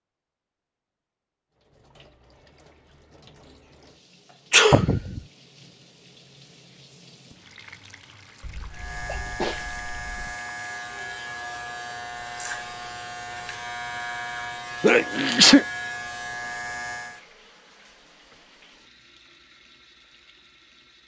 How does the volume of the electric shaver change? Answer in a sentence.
The loudness of the electric shaver stays about the same.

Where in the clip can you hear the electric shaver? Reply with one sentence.
The electric shaver can be heard from 8.7 to 17.2 s.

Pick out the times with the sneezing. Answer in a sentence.
You can hear the sneezing from 4.5 to 5.2 s, from 8.4 to 10.3 s and from 14.8 to 15.7 s.